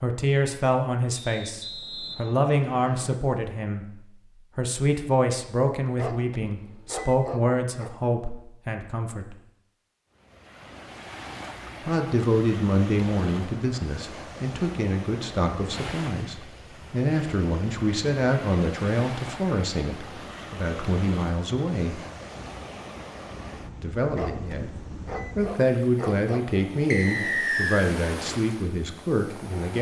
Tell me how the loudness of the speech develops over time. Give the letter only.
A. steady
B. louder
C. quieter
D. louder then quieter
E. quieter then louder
A.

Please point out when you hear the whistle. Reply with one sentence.
You can hear the whistle from 1.1 to 3.1 s and from 26.9 to 27.9 s.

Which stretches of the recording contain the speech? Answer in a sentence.
You can hear the speech from 0.0 to 9.3 s, from 11.8 to 22.0 s and from 23.8 to 29.7 s.